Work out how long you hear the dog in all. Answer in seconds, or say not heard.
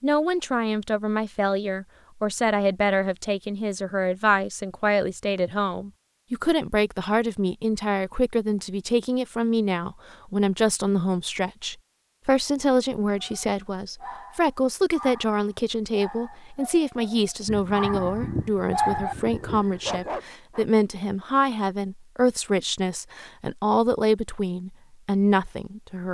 7 s.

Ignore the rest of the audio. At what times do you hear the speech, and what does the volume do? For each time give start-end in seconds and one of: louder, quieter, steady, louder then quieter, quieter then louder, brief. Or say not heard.
0.0-26.0 steady.